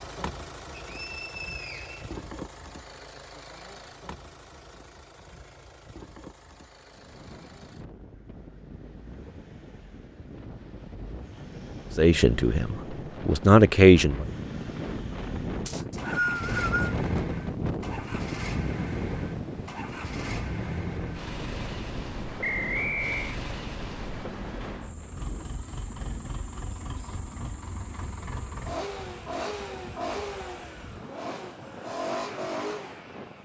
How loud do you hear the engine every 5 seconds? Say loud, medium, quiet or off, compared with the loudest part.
medium, quiet, quiet, loud, loud, loud, loud.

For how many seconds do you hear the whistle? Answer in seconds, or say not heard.
4 s.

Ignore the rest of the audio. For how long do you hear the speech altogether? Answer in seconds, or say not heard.
2 s.